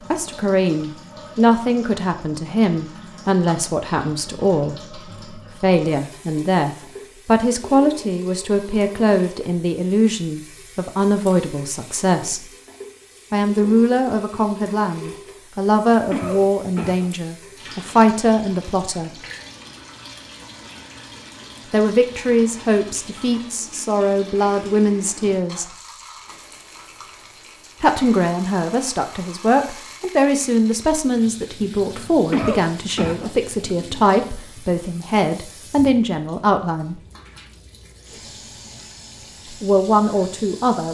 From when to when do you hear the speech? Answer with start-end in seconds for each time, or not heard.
0.0-12.5, 13.3-19.2, 21.7-25.6, 27.8-37.0, 39.5-40.8.